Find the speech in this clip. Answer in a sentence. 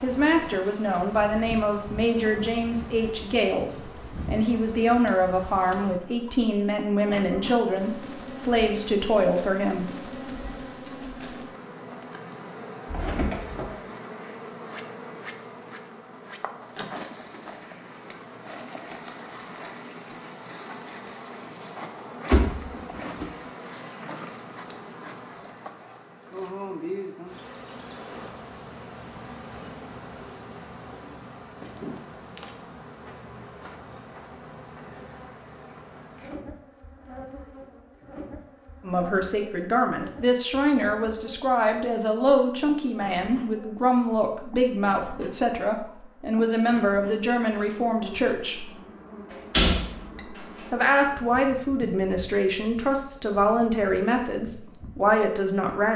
You can hear the speech from 0.0 to 9.8 s, from 38.8 to 48.7 s and from 50.1 to 55.9 s.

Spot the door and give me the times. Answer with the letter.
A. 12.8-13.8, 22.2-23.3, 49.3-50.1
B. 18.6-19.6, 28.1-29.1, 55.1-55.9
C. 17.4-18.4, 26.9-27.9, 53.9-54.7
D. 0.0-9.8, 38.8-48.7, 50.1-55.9
A.